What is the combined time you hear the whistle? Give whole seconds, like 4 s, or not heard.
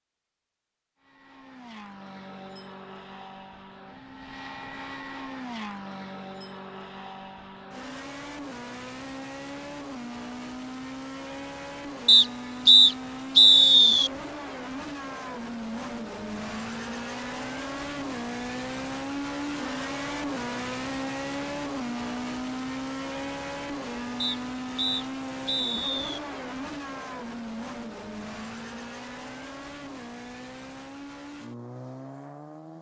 4 s.